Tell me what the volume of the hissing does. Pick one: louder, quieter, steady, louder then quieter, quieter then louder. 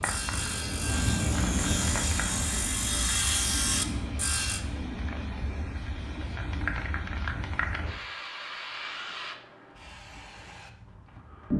quieter.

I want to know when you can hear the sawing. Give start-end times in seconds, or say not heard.
0.0-4.6.